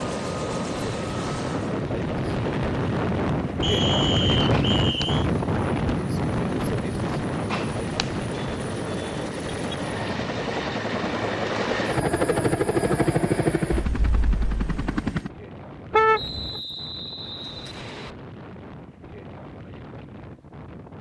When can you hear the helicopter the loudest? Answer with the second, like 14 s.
13 s.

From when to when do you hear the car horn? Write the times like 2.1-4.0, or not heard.
4.5-5.0, 7.5-8.1, 15.9-16.6.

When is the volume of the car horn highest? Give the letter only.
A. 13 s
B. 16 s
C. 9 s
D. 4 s
B.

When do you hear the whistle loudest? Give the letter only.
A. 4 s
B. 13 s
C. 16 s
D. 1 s
A.